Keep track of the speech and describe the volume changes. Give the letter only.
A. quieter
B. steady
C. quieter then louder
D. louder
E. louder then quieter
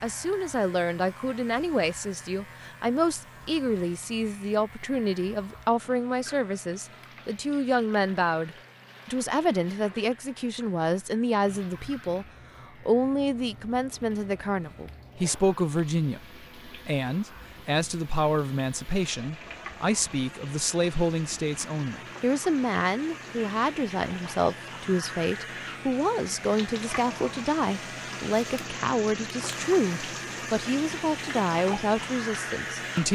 B.